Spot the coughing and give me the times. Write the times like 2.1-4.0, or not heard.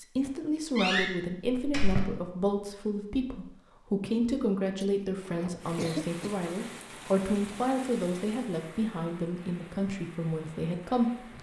4.8-6.3.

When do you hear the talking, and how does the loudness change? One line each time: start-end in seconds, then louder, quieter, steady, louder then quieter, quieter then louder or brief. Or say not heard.
0.0-11.3 steady.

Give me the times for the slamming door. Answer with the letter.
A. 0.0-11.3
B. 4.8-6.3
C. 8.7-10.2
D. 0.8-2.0
D.